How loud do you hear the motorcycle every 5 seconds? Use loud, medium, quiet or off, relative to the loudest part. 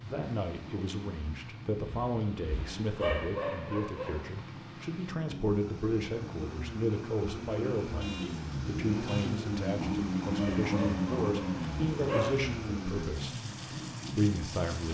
medium, loud, loud.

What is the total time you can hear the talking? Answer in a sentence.
You can hear the talking for 14 seconds altogether.